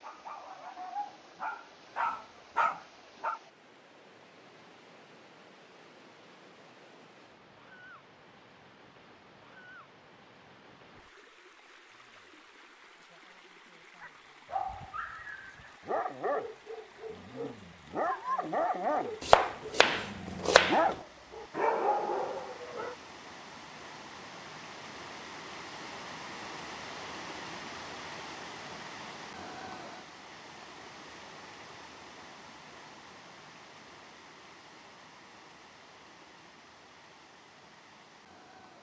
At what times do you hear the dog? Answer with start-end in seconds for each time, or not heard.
0.0-3.4, 14.0-22.9.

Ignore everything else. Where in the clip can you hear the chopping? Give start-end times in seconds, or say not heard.
19.2-20.9.